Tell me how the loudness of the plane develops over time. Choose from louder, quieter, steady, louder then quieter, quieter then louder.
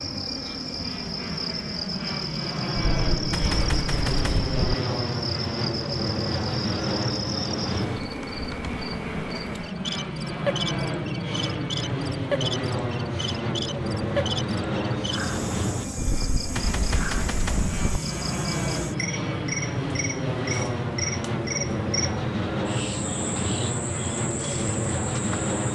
steady.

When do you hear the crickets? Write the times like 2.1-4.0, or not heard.
0.0-25.6.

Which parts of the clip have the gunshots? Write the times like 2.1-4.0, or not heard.
2.8-4.8, 15.9-18.0.